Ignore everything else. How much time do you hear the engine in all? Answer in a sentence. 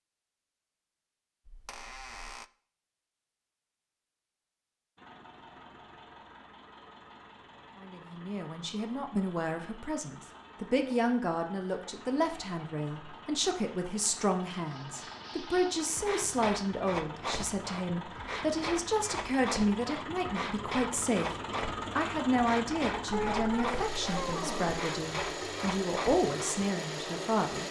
The engine can be heard for 23 seconds in total.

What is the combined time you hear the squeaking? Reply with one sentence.
The squeaking can be heard for 3 seconds in total.